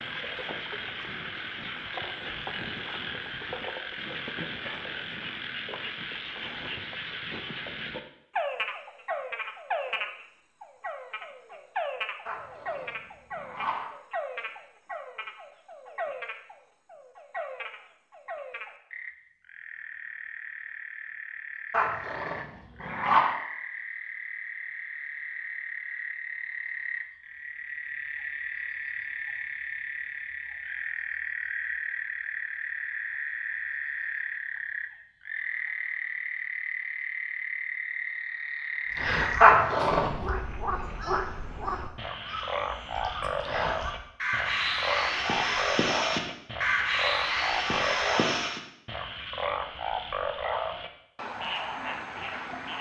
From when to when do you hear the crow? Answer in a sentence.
You can hear the crow from 38.9 to 48.6 s.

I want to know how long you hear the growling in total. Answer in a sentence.
You can hear the growling for 4 seconds altogether.